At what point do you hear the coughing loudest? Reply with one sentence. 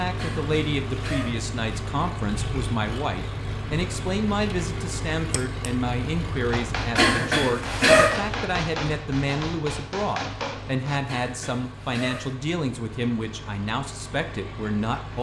The volume of the coughing peaks at 8 seconds.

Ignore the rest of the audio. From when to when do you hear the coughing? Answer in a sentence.
The coughing can be heard from 0.1 to 1.4 s, from 7.0 to 8.1 s and from 11.1 to 12.3 s.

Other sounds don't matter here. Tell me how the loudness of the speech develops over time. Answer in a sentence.
The loudness of the speech stays about the same.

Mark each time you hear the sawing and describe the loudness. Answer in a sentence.
You can't hear the sawing here.